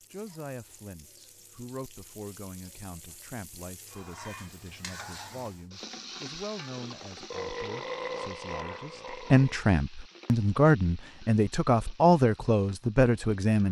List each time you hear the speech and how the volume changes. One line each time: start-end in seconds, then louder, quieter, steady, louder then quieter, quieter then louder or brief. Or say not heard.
0.1-13.6 louder.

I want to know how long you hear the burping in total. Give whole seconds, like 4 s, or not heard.
2 s.